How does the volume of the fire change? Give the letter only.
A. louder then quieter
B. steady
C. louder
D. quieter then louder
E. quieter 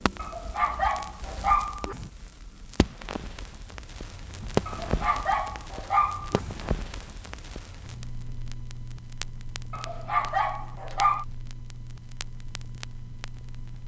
A.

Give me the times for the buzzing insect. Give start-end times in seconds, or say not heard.
not heard.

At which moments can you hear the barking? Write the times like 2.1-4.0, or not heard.
0.1-2.1, 4.7-6.5, 9.7-11.2.